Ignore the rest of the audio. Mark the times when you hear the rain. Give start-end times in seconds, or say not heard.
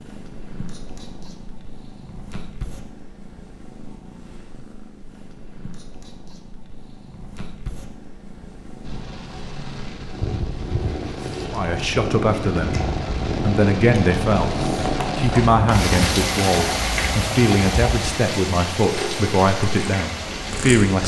8.8-21.0.